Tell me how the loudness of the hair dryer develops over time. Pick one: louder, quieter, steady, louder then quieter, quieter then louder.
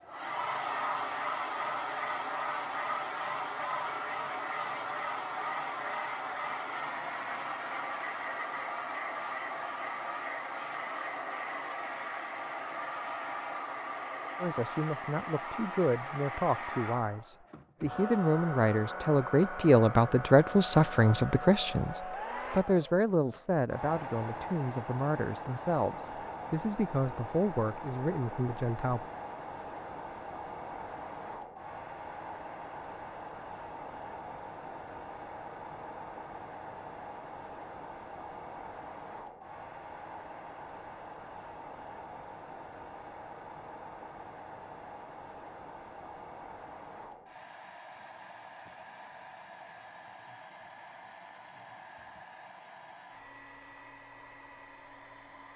quieter.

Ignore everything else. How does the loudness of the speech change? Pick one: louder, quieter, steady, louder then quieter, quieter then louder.
louder then quieter.